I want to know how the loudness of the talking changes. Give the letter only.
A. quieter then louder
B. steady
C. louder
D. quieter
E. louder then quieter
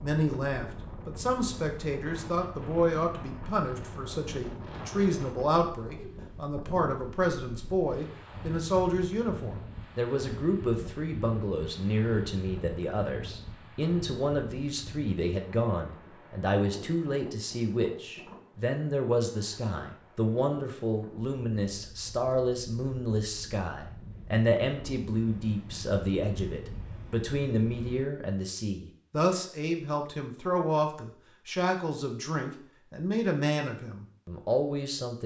B.